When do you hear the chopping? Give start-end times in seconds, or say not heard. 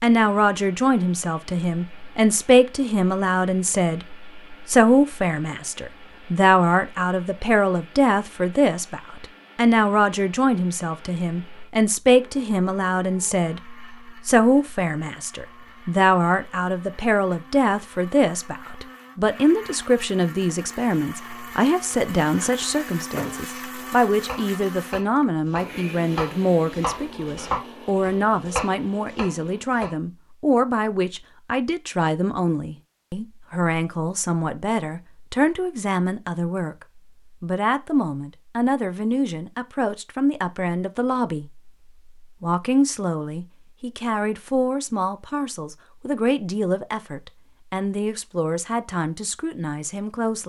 22.3-29.9.